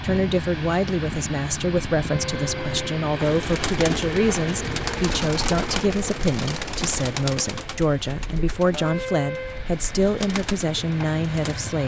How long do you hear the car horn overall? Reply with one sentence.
The car horn can be heard for 2 seconds in total.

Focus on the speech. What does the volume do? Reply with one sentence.
The volume of the speech stays about the same.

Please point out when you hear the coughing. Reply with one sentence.
You can't hear the coughing here.